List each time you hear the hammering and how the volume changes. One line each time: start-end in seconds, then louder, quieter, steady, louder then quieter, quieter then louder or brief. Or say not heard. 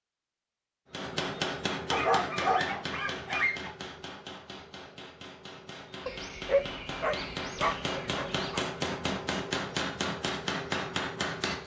0.9-11.6 quieter then louder.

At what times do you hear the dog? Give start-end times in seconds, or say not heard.
1.9-3.8, 6.0-8.7.